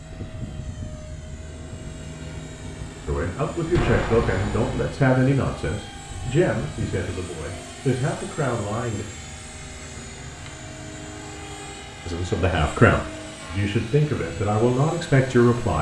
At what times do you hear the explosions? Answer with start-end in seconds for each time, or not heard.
3.8-4.9.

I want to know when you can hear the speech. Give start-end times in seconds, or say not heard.
3.0-9.1, 12.1-15.7.